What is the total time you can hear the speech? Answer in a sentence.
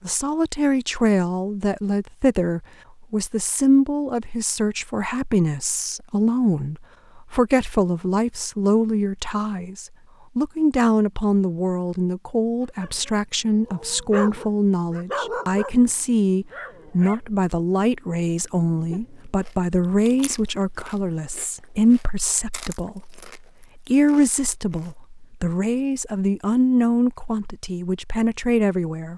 The speech can be heard for 29 seconds in total.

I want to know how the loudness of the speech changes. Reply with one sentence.
The volume of the speech stays about the same.